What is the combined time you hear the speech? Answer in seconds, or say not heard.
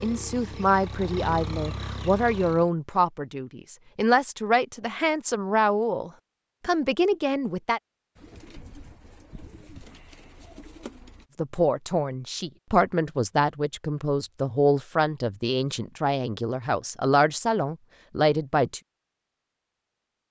15 s.